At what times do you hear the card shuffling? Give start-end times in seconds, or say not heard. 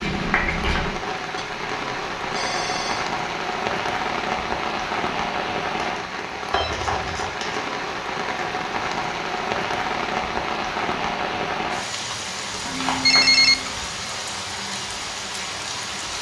0.0-1.0, 5.8-7.7, 12.7-13.7.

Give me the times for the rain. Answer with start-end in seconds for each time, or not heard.
0.0-16.1.